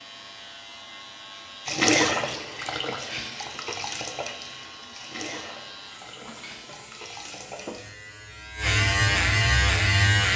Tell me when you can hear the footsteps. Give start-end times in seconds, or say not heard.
not heard.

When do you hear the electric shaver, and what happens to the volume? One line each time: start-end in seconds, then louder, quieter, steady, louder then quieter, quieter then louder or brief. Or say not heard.
0.0-10.3 louder.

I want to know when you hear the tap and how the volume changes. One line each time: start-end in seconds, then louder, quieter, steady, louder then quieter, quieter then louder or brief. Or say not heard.
1.6-8.0 quieter.